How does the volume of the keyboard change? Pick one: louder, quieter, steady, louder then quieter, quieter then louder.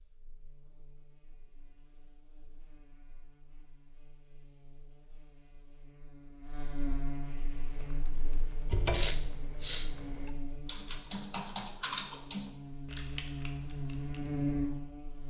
louder then quieter.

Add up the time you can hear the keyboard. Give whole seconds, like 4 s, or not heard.
7 s.